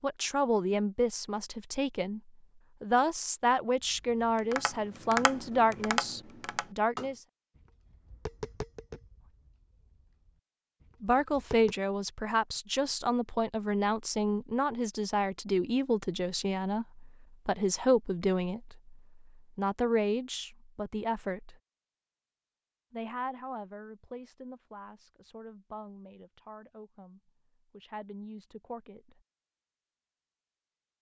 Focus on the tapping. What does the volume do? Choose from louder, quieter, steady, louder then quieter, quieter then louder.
quieter.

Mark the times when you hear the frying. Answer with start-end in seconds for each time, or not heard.
not heard.